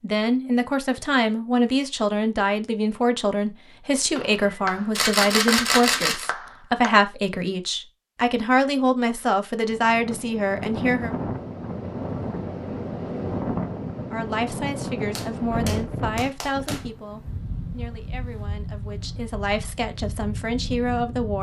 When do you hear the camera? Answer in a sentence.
You can hear the camera from 4.3 to 6.3 s.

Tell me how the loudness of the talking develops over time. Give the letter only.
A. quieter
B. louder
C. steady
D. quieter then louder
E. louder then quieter
A.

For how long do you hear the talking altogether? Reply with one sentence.
The talking can be heard for 18 seconds in total.